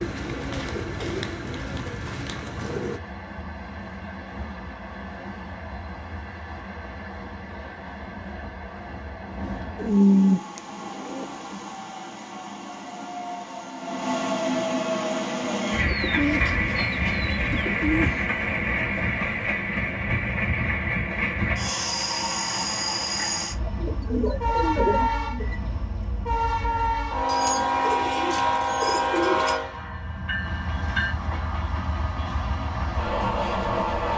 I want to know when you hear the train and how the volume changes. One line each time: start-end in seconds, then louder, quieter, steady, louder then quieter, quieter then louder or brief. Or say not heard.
0.0-34.1 louder.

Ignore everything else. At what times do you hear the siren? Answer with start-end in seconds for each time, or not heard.
not heard.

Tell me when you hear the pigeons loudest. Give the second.
10 s.